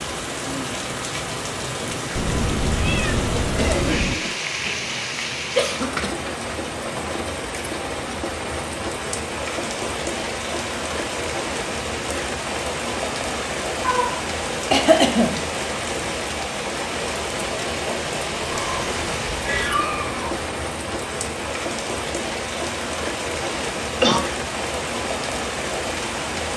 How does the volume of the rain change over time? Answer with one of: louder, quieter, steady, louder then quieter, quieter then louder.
steady.